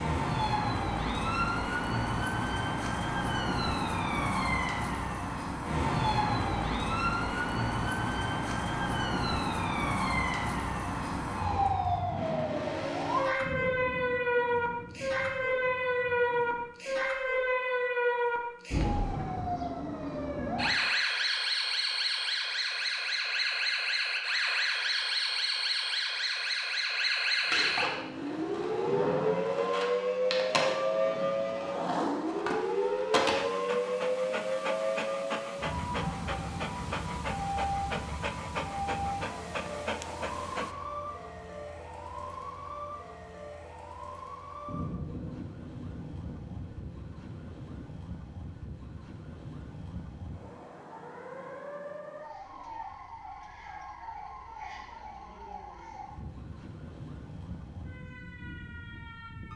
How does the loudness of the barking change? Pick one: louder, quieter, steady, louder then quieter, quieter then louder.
steady.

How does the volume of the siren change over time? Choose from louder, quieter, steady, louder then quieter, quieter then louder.
quieter.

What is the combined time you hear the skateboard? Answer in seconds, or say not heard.
6 s.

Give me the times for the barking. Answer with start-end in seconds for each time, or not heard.
33.3-40.8.